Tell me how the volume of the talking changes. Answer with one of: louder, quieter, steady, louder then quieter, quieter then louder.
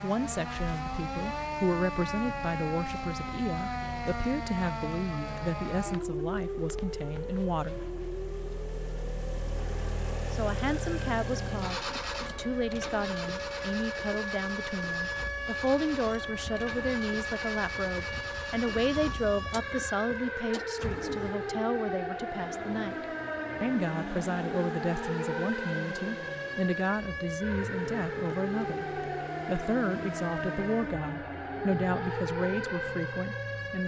steady.